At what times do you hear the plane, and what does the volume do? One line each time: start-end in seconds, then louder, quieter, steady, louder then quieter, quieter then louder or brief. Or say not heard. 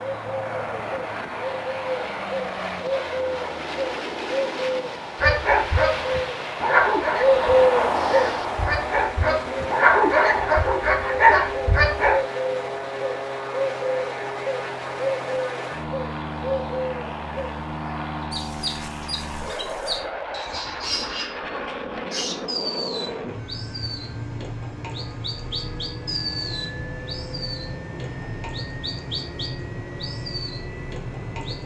0.0-31.6 steady.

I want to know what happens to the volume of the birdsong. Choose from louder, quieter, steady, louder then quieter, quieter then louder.
louder then quieter.